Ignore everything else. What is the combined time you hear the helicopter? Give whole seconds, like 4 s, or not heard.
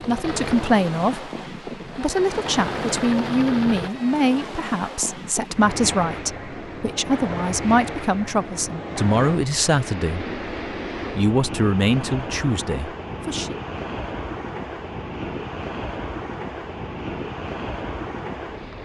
4 s.